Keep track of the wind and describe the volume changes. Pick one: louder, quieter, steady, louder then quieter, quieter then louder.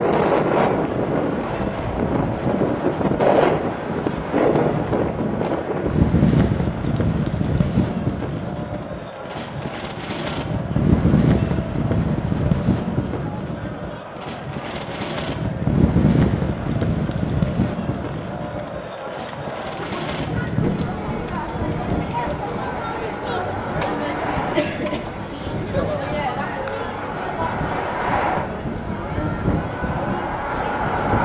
quieter.